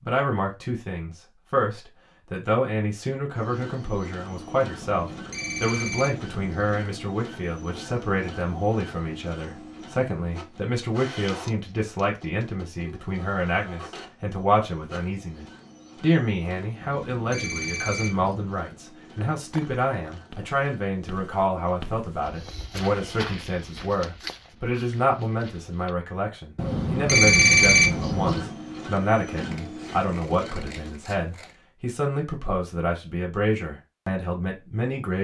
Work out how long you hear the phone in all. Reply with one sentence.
The phone can be heard for 6 seconds in total.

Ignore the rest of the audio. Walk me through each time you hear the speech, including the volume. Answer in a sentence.
You can hear the speech from 0.0 to 35.2 s, at a steady volume.